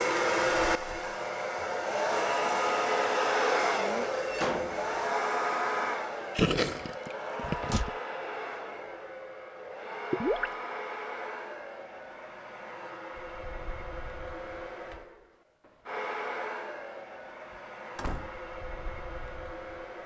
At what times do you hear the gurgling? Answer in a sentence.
The gurgling can be heard from 6.3 to 7.9 s and from 10.1 to 10.5 s.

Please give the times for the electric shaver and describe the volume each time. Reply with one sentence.
The electric shaver can't be heard in this clip.